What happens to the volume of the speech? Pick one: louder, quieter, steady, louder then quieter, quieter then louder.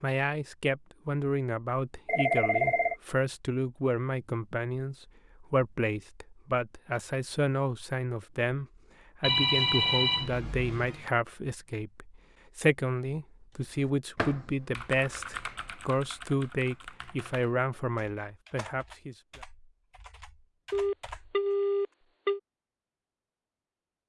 steady.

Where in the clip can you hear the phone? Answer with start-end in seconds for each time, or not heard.
2.0-3.0, 9.2-11.1, 20.7-22.4.